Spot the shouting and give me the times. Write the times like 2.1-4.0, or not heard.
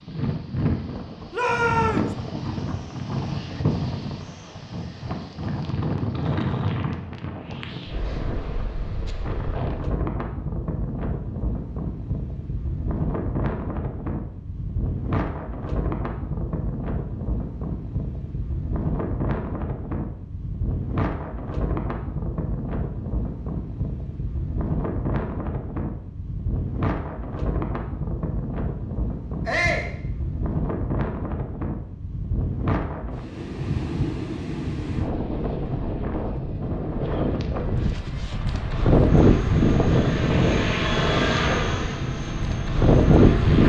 1.3-2.1, 29.4-29.9.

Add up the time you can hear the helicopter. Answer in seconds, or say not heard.
5 s.